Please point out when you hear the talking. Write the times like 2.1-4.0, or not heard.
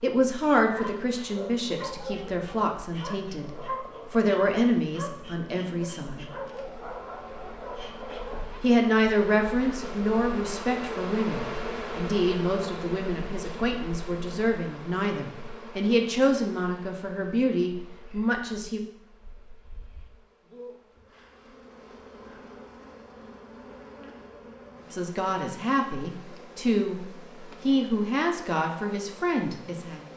0.0-6.2, 8.6-18.8, 24.9-30.0.